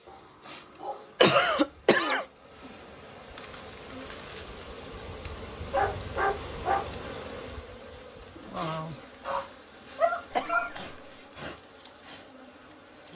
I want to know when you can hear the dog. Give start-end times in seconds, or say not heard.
0.1-2.2, 5.7-7.0, 9.2-10.7.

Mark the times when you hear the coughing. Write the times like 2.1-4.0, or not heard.
1.2-2.2, 10.3-10.8.